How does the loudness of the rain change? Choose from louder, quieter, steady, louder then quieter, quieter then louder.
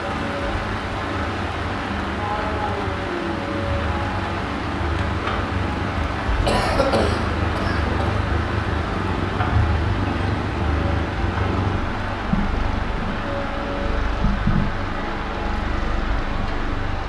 steady.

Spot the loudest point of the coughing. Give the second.
7 s.